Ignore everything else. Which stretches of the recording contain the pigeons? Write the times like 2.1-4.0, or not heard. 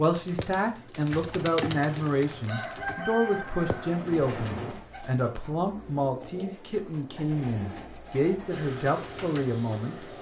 0.0-10.1.